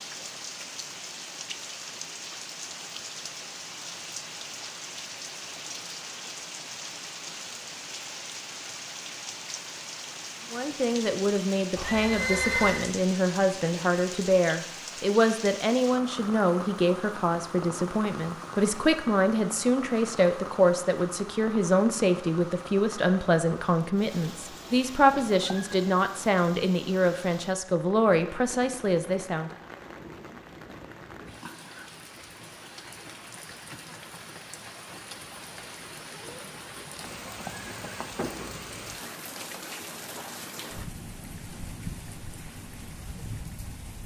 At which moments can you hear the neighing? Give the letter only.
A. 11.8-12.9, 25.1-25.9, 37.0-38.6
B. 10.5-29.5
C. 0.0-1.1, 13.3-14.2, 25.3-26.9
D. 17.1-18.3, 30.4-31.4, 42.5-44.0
A.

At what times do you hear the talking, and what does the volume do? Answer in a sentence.
The talking can be heard from 10.5 to 29.5 s, at a steady volume.